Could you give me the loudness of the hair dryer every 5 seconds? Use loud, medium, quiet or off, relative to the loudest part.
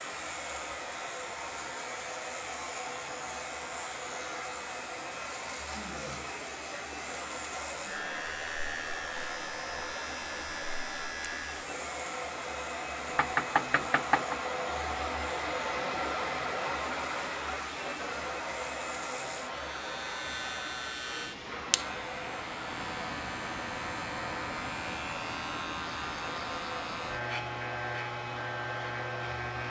medium, medium, loud, loud, medium, medium.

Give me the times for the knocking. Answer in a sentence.
The knocking can be heard from 13.1 to 14.3 s.